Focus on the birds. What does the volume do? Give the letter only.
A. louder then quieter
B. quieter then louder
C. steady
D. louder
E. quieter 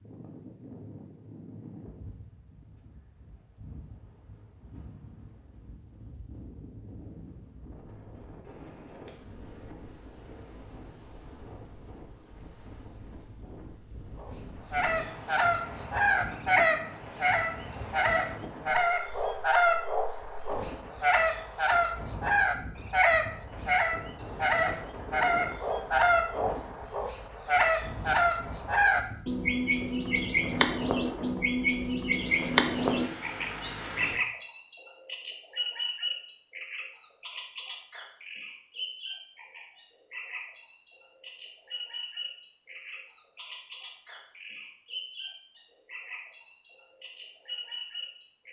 E.